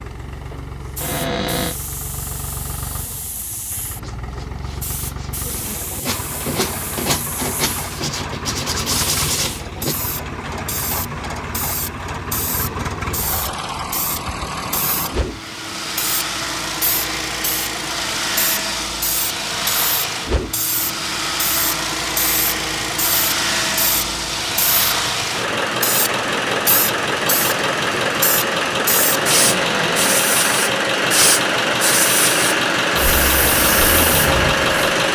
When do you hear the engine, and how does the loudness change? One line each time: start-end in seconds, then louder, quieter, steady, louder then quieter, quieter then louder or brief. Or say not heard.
0.0-35.0 louder.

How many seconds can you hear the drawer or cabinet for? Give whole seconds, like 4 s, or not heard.
2 s.